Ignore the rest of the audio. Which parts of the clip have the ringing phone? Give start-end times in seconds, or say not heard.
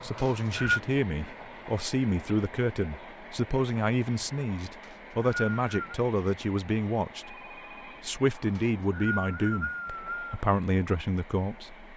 7.2-8.1.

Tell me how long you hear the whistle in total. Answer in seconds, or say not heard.
4 s.